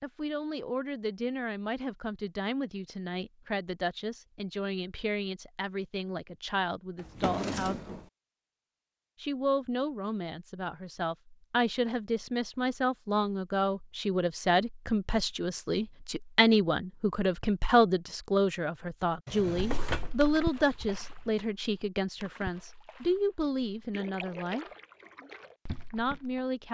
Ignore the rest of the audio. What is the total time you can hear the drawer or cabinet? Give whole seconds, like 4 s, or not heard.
3 s.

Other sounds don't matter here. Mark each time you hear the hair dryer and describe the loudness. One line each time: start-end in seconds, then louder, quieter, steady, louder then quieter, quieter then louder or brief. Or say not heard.
not heard.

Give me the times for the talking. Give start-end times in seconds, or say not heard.
0.0-7.8, 9.2-24.6, 25.9-26.6.